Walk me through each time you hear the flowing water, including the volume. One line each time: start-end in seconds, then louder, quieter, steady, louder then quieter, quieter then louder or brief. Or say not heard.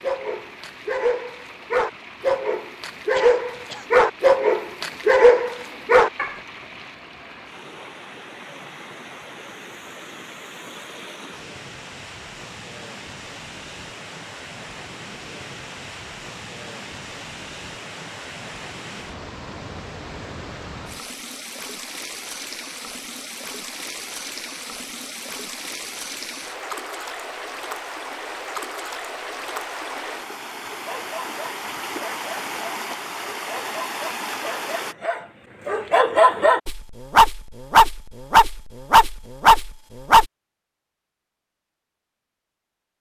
0.0-35.0 louder.